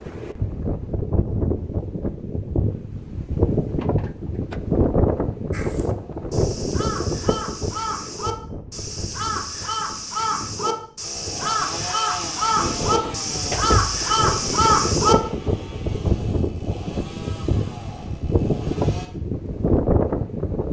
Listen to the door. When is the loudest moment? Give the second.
14 s.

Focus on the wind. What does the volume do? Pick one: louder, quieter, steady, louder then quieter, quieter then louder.
quieter then louder.